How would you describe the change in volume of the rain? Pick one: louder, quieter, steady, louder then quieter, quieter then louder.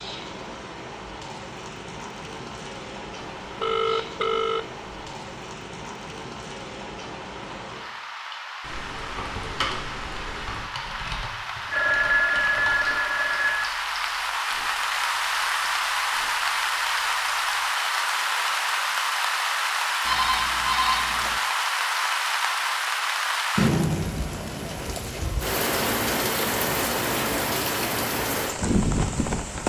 louder.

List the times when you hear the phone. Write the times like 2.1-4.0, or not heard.
3.6-4.7, 11.7-13.7, 20.1-21.4.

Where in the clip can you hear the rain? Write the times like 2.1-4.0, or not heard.
0.0-29.6.